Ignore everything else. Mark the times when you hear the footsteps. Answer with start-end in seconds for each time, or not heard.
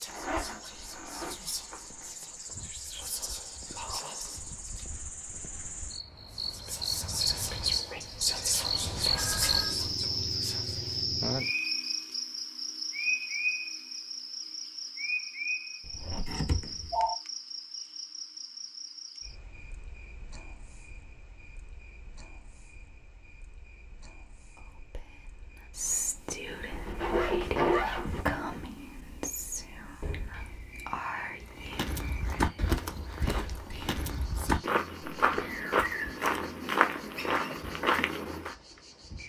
31.4-38.5.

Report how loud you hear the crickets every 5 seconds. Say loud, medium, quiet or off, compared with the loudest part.
quiet, loud, loud, medium, quiet, quiet, quiet, quiet.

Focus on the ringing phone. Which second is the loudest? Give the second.
17 s.